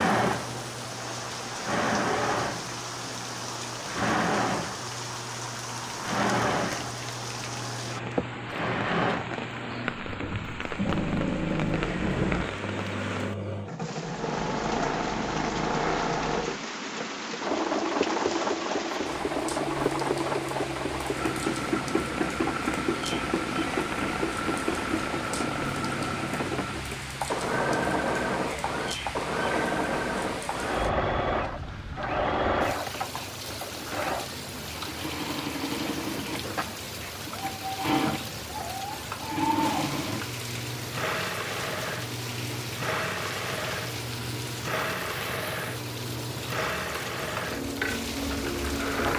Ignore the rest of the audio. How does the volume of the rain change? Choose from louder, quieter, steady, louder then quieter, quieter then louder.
steady.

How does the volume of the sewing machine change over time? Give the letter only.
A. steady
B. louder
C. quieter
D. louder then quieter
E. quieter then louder
A.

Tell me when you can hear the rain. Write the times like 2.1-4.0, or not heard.
0.0-49.1.